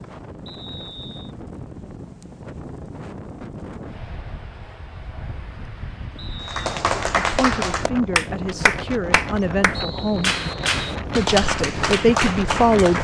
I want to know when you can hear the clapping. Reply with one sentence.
You can hear the clapping from 6.5 to 13.0 s.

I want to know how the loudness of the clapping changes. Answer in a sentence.
The volume of the clapping stays about the same.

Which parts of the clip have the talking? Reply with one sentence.
You can hear the talking from 7.2 to 10.3 s and from 11.2 to 13.0 s.